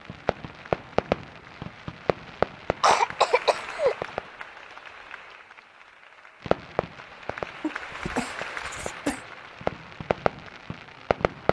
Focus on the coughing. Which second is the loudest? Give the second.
3 s.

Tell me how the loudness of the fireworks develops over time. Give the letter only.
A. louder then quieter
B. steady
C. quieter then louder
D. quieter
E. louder
C.